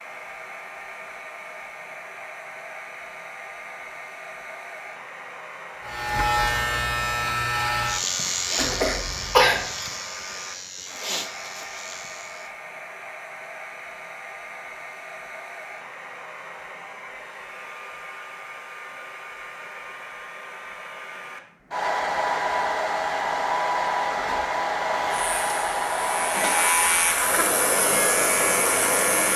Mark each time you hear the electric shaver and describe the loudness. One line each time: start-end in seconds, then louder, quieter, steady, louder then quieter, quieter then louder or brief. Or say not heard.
5.8-12.5 quieter
24.9-29.3 louder.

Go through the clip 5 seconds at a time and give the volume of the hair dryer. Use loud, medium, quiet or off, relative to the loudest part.
quiet, quiet, quiet, quiet, loud, loud.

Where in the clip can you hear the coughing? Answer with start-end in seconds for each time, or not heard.
8.6-9.7.